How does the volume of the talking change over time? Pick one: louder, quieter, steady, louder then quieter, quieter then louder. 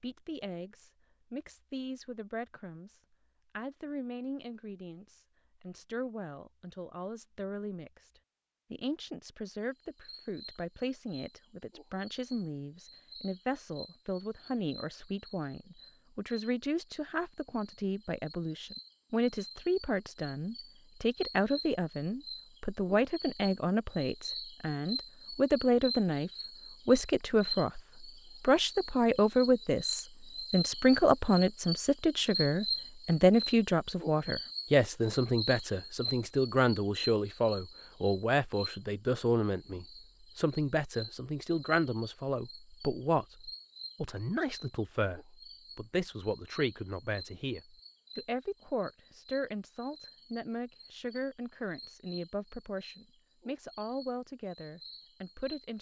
louder then quieter.